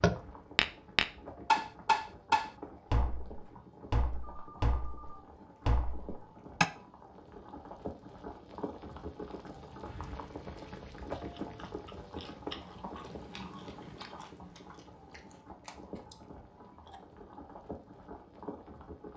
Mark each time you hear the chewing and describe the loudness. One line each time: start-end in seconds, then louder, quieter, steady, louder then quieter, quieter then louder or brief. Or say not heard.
11.2-17.1 quieter.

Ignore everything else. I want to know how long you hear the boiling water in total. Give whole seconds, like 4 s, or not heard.
19 s.